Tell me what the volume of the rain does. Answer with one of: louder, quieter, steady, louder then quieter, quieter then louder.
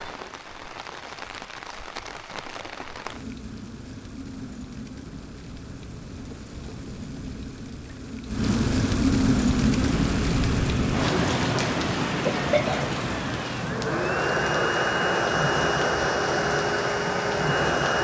louder then quieter.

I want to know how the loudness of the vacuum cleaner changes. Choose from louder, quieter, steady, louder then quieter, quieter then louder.
louder.